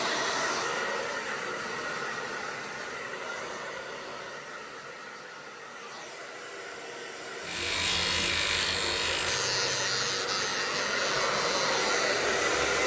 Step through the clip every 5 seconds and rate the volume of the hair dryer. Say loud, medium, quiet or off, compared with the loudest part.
medium, medium, loud.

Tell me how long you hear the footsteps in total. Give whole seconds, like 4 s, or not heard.
not heard.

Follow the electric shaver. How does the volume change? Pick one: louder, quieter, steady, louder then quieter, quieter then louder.
quieter.